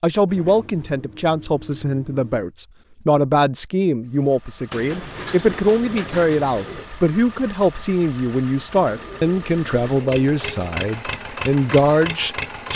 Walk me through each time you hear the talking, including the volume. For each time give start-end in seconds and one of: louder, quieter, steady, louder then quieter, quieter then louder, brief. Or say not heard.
0.0-12.7 steady.